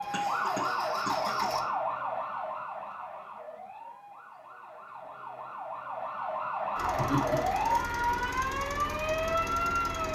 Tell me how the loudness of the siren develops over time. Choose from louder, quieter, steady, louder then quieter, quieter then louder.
quieter then louder.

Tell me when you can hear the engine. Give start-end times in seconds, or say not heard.
0.0-1.6, 6.8-10.1.